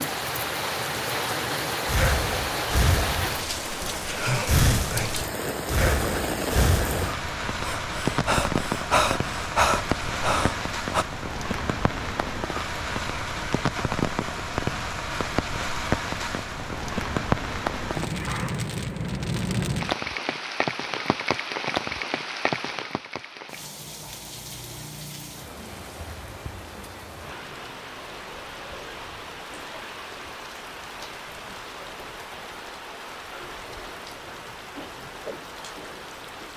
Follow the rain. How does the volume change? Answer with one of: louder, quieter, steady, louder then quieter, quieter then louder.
quieter.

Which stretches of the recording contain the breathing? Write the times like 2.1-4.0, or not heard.
1.9-11.1.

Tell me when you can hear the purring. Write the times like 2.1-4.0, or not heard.
not heard.